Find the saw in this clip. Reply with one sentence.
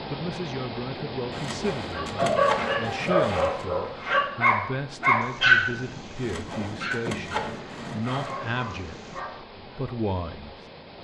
The saw can be heard from 1.3 to 3.6 s and from 6.2 to 8.3 s.